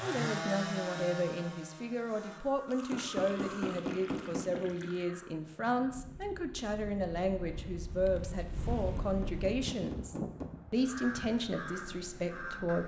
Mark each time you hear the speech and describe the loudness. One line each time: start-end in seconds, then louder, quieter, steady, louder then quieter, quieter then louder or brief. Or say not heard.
0.0-12.8 steady.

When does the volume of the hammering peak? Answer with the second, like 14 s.
4 s.